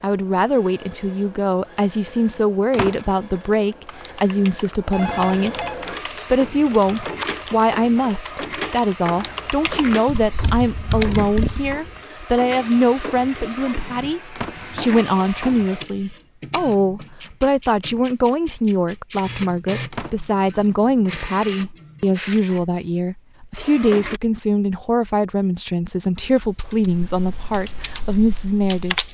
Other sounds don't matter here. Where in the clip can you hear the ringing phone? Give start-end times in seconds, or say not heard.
4.9-5.8.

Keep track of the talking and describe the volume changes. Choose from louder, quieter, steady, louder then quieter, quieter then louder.
steady.